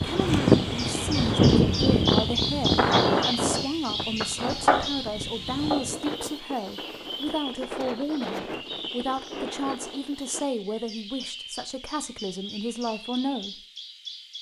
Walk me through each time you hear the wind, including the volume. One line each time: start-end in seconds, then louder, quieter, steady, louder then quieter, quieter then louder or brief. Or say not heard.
0.0-10.5 quieter.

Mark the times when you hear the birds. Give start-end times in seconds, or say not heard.
0.0-14.3.